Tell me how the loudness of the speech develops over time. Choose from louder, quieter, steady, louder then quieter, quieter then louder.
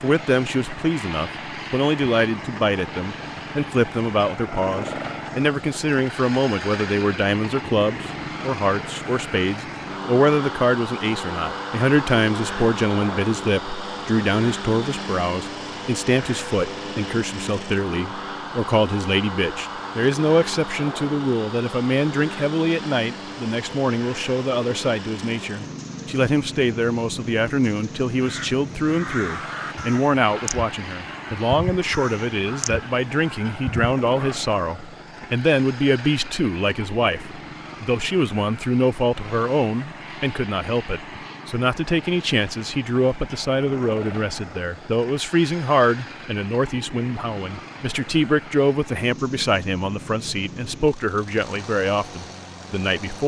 steady.